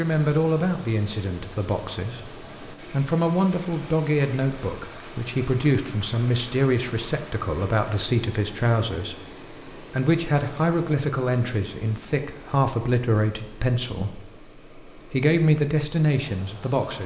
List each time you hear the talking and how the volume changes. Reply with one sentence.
You can hear the talking from 0.0 to 17.0 s, at a steady volume.